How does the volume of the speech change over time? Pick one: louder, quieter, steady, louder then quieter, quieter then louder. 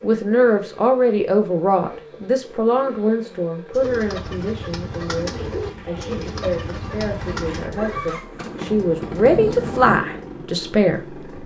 quieter then louder.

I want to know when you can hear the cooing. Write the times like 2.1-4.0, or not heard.
3.7-10.1.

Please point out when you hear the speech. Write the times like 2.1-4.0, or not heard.
0.0-11.2.